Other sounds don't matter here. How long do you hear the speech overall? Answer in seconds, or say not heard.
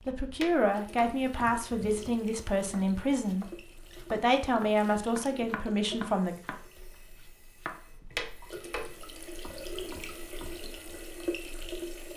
6 s.